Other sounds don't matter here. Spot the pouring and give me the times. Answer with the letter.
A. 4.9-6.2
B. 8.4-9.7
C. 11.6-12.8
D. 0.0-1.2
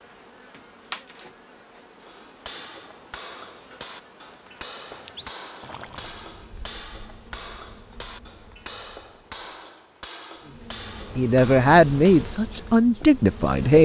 A.